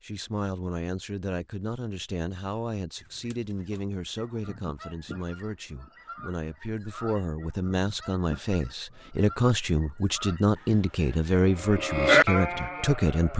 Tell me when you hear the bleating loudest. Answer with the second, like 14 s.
12 s.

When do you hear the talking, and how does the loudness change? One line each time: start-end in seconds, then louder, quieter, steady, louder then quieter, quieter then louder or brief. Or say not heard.
0.0-13.3 louder.